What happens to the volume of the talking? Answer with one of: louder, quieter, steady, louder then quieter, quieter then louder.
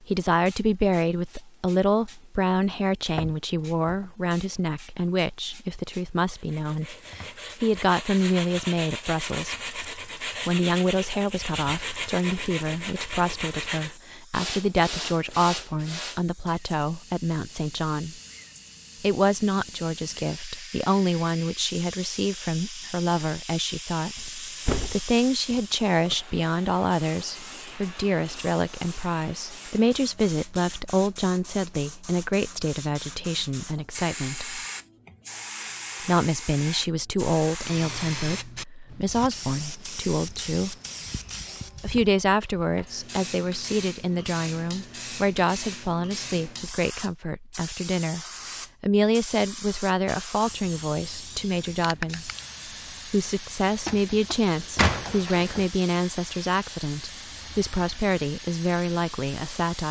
steady.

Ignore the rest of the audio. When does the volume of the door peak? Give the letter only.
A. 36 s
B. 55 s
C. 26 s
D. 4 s
B.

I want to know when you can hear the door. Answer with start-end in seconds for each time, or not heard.
2.7-4.1, 24.1-26.1, 53.9-55.6.